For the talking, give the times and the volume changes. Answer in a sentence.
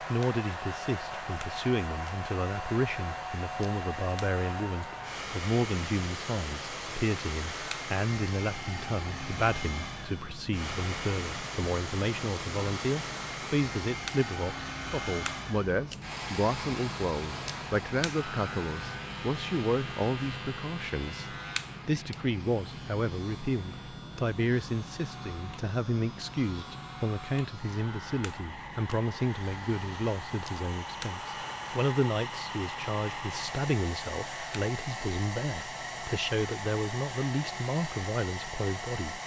You can hear the talking from 0.1 to 39.2 s, at a steady volume.